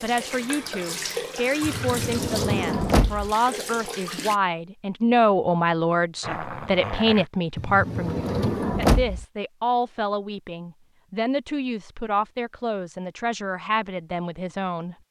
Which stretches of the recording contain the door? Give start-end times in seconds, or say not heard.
1.6-3.3, 7.5-9.2.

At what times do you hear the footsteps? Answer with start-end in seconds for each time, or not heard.
not heard.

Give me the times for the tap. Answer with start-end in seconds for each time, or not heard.
0.0-4.4.